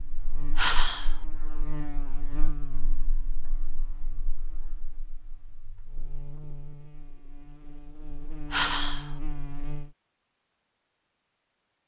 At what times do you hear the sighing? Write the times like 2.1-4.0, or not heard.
0.6-1.1, 8.5-9.1.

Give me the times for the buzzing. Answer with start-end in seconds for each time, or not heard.
0.0-9.9.